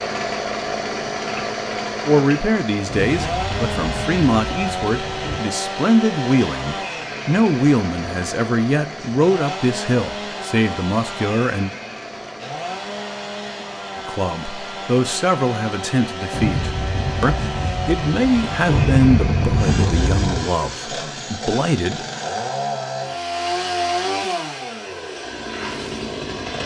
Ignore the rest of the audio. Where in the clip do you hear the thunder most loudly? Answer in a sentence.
The volume of the thunder peaks at 19 seconds.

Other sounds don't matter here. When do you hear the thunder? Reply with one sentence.
You can hear the thunder from 2.9 to 5.4 s and from 16.3 to 20.5 s.